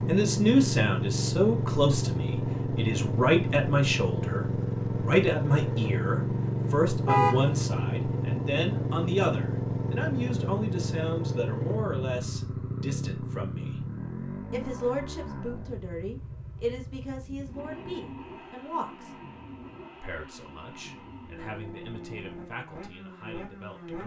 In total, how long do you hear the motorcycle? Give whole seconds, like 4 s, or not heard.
24 s.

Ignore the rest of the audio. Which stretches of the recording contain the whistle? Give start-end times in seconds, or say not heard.
not heard.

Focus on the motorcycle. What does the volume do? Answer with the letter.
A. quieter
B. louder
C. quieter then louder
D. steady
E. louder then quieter
A.